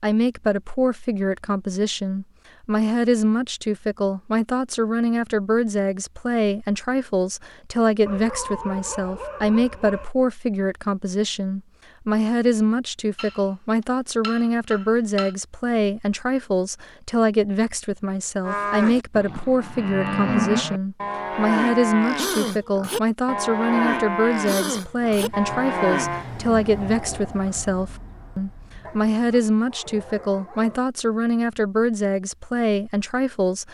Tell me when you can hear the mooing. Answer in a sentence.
The mooing can be heard from 18.4 to 26.2 s.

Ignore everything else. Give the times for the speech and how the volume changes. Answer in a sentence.
The speech can be heard from 0.0 to 33.6 s, at a steady volume.